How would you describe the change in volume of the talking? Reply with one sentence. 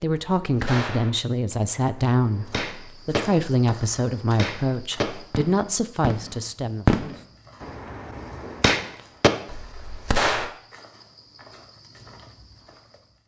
The volume of the talking stays about the same.